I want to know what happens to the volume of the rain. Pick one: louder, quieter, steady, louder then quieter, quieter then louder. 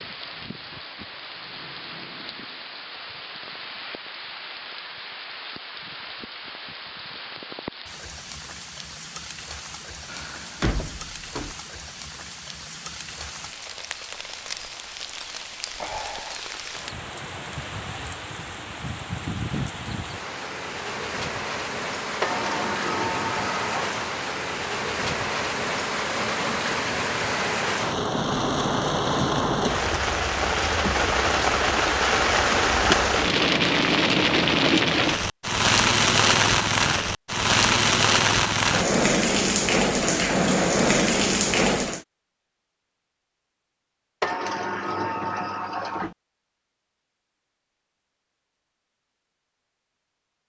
louder.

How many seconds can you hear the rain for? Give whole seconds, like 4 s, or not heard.
42 s.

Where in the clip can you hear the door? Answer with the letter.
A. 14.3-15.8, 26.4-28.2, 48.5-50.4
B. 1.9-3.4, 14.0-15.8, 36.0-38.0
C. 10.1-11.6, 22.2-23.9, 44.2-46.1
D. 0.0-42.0
C.